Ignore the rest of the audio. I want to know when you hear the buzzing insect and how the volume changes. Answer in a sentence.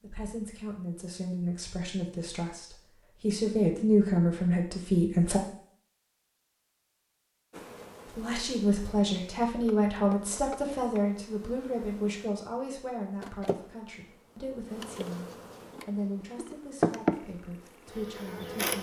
The buzzing insect can be heard from 7.5 to 18.7 s, getting louder.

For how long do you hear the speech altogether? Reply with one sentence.
The speech can be heard for 16 seconds in total.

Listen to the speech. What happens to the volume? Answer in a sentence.
The loudness of the speech goes up, then down.